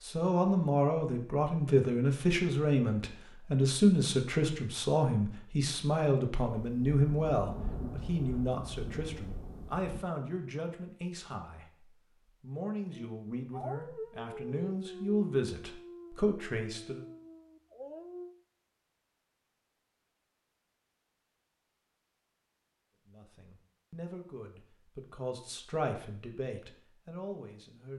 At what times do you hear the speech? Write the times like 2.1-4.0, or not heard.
0.0-17.1, 23.1-27.9.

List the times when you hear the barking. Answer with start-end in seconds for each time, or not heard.
12.9-18.4.